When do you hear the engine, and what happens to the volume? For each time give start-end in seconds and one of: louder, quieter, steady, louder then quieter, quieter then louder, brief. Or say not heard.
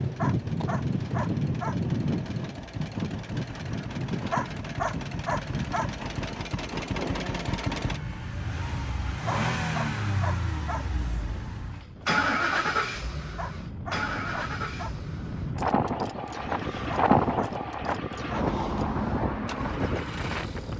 0.0-20.7 louder then quieter.